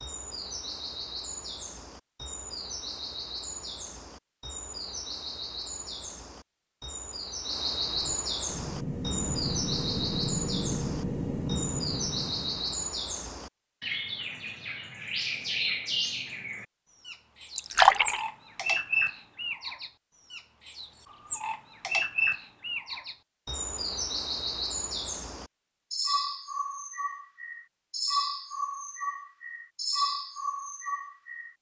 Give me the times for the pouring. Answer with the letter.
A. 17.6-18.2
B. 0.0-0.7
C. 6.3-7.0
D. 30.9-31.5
A.